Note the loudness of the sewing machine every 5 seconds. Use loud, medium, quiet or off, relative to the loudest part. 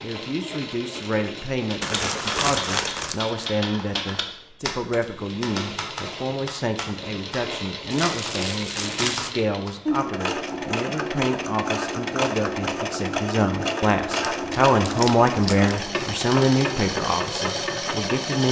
medium, medium, loud, loud.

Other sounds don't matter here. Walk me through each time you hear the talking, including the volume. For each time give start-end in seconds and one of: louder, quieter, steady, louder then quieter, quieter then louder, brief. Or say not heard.
0.0-18.4 louder.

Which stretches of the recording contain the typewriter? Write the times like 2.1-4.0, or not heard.
1.7-9.7.